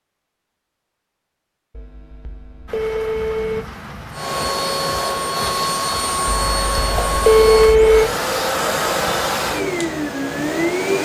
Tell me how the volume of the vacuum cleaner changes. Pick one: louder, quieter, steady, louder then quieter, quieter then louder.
steady.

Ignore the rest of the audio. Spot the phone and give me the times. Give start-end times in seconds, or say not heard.
1.7-3.6, 6.5-8.1.